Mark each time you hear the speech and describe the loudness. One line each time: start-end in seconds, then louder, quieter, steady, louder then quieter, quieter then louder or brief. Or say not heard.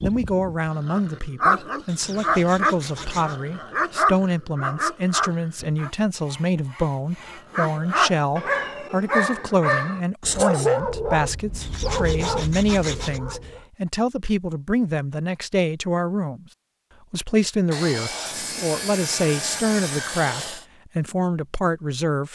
0.0-16.4 steady
17.1-22.3 steady.